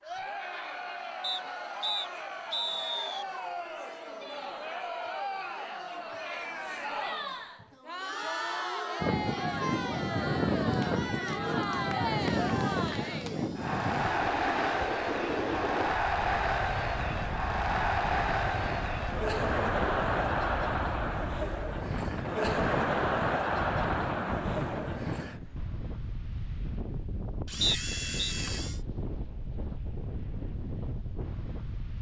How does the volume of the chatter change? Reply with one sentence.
The volume of the chatter goes up.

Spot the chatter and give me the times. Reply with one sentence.
The chatter can be heard from 0.0 to 25.4 s.